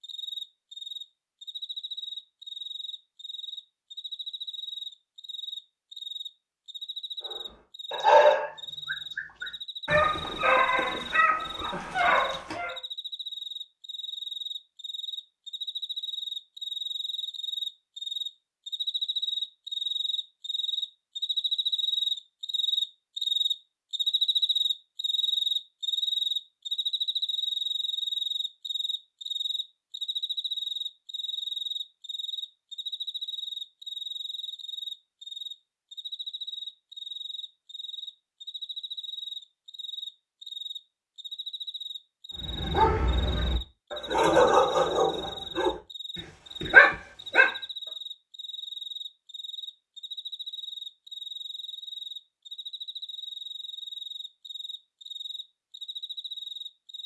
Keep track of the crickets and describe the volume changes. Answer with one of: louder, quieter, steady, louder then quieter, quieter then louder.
louder then quieter.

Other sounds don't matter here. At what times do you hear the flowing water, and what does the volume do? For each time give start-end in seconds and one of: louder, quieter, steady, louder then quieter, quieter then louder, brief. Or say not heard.
not heard.